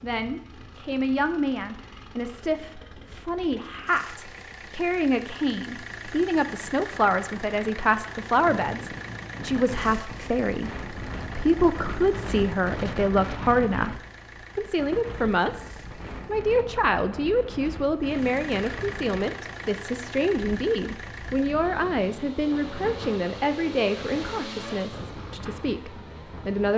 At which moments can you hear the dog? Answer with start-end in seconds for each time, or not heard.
not heard.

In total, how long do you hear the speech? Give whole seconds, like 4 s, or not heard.
27 s.